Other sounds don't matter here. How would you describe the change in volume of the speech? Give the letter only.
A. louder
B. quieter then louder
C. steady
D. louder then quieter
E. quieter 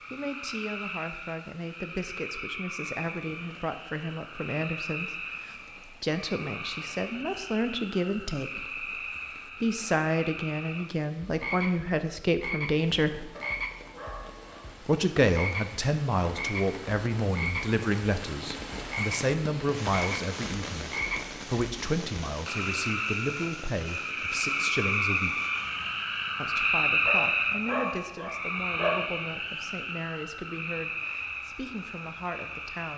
D.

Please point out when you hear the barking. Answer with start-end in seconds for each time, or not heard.
13.3-14.7, 27.1-29.1.